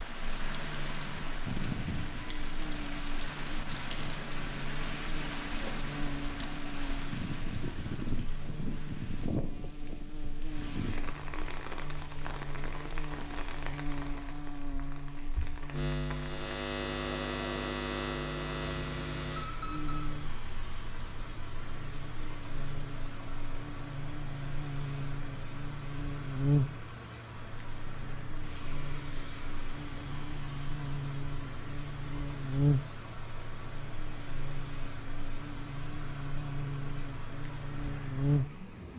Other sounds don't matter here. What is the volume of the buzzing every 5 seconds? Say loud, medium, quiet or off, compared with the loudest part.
medium, medium, medium, loud, medium, loud, loud, loud.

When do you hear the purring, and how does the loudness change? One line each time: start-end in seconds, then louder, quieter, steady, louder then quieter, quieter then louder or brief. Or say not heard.
not heard.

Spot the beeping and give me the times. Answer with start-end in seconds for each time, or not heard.
19.4-20.0.